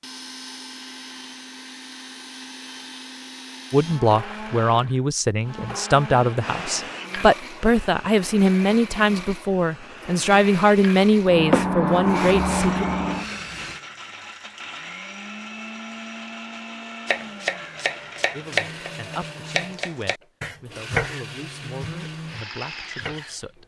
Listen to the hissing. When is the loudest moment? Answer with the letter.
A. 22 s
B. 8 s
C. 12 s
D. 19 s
C.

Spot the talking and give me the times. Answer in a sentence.
The talking can be heard from 3.7 to 12.8 s and from 18.3 to 23.6 s.